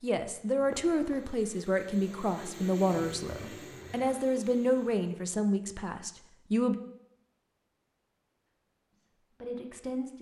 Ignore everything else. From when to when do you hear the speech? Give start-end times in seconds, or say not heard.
0.0-6.8, 8.9-10.1.